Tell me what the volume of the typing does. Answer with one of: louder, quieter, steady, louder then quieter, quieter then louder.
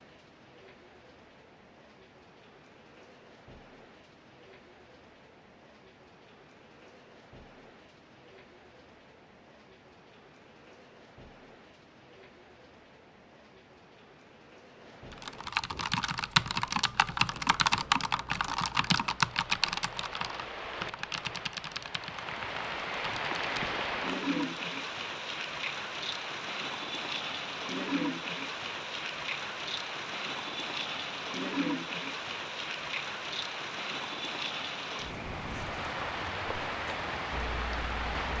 quieter.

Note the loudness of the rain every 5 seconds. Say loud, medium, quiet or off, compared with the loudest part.
quiet, quiet, quiet, quiet, loud, loud, loud, loud.